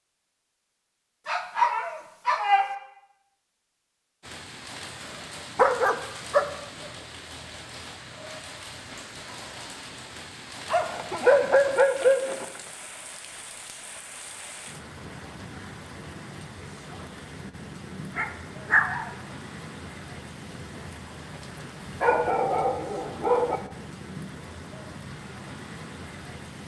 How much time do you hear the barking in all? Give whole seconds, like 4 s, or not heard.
7 s.